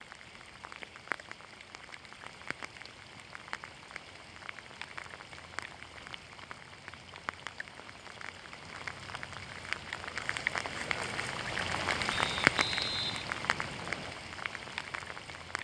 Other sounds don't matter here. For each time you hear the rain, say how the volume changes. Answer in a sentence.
The rain can be heard from 0.0 to 15.5 s, getting louder.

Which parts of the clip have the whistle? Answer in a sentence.
The whistle can be heard from 12.1 to 14.2 s.